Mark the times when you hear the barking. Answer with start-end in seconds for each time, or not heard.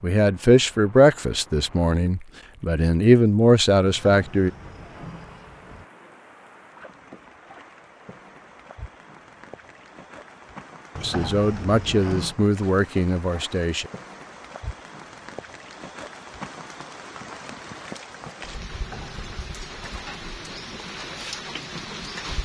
not heard.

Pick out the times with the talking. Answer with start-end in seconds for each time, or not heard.
0.0-4.5, 11.0-13.9.